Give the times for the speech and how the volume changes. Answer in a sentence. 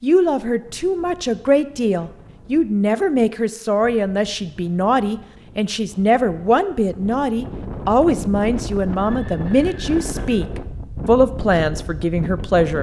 The speech can be heard from 0.0 to 12.7 s, at a steady volume.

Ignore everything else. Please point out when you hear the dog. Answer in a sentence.
The dog can't be heard in this clip.